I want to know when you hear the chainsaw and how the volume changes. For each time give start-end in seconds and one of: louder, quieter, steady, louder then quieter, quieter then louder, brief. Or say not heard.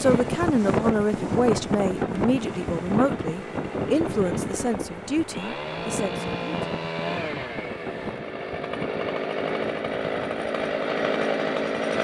0.0-11.9 louder.